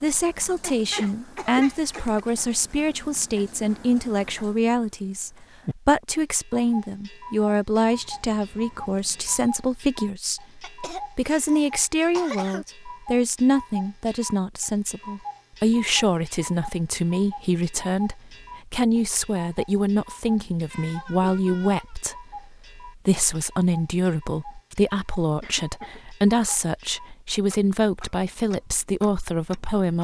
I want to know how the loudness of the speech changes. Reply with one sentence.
The volume of the speech stays about the same.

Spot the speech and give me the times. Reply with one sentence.
You can hear the speech from 0.0 to 29.9 s.